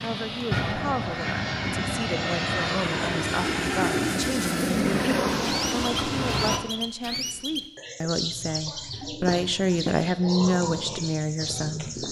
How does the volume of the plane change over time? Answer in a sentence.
The volume of the plane stays about the same.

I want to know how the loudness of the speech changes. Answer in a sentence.
The volume of the speech goes up.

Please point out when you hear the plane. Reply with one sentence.
You can hear the plane from 0.0 to 6.6 s.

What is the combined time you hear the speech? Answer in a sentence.
The speech can be heard for 12 seconds in total.